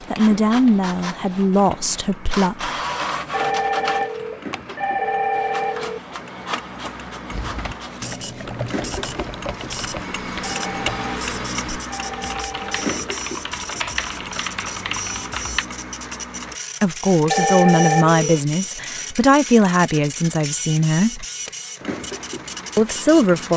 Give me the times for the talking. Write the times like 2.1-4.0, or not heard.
0.1-2.7, 16.8-21.2, 22.8-23.5.